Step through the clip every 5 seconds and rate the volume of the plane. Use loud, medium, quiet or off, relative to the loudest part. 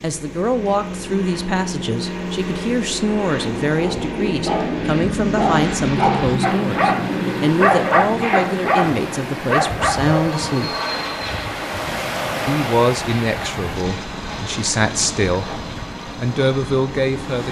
loud, loud, medium, medium.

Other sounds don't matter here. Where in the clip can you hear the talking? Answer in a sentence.
You can hear the talking from 0.0 to 10.7 s, from 12.4 to 15.4 s and from 16.1 to 17.4 s.